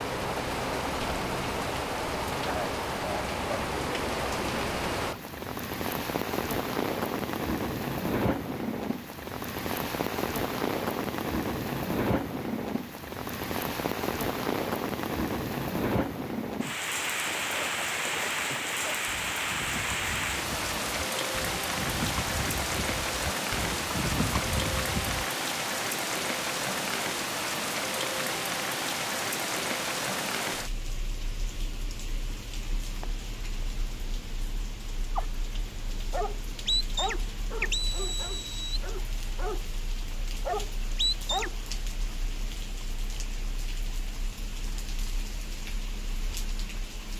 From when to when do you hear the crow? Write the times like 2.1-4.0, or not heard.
not heard.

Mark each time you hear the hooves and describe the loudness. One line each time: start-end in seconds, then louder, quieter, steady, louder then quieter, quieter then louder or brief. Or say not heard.
17.2-25.3 louder.